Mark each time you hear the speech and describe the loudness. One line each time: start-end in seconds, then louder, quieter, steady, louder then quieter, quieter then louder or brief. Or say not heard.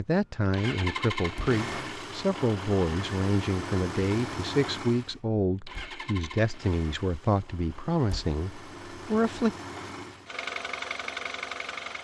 0.0-9.6 steady.